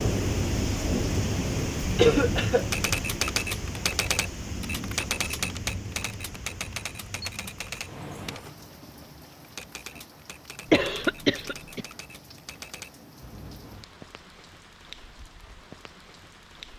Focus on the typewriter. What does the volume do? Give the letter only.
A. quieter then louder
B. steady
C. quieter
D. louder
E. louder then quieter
C.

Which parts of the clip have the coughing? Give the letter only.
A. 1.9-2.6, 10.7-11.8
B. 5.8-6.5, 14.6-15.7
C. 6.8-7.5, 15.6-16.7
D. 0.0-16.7
A.